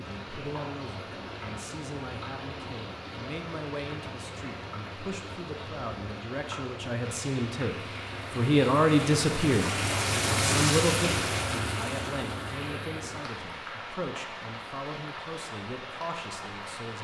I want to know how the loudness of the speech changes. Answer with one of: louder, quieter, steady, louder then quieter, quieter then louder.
louder then quieter.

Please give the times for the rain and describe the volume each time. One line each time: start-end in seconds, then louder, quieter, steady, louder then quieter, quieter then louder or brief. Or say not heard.
0.0-17.0 louder then quieter.